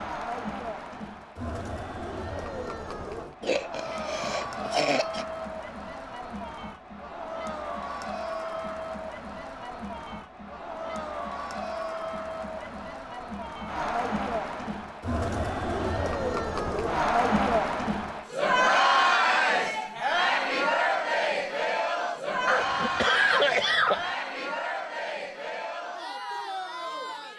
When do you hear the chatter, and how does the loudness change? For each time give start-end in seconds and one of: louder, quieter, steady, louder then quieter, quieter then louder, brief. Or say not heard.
0.0-27.3 louder then quieter.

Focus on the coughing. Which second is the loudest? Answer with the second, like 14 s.
23 s.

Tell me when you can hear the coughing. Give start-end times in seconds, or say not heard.
3.4-5.2, 22.4-24.1.